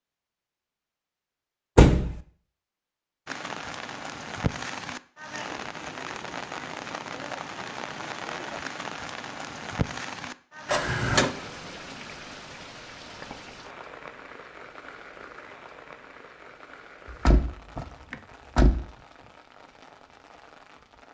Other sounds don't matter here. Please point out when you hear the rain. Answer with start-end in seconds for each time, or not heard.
3.2-21.0.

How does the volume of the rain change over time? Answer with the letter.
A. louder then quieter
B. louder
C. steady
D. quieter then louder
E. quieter
E.